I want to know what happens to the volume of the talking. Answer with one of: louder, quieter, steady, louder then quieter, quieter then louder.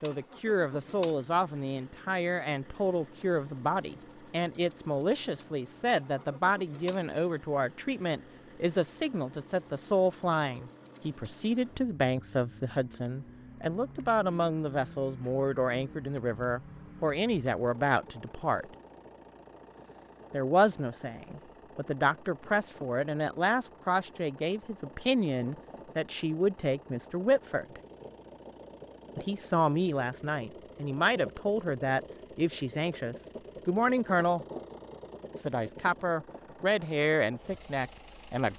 steady.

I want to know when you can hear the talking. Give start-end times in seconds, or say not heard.
0.0-18.6, 20.3-27.8, 29.1-34.5, 35.4-38.5.